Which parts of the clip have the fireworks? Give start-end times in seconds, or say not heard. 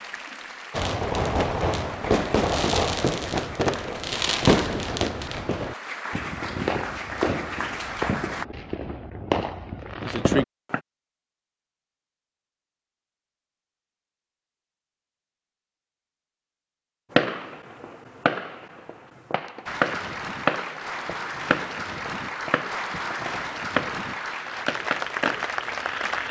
0.7-10.8, 17.1-26.2.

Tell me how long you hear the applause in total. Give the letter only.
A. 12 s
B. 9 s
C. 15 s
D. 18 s
C.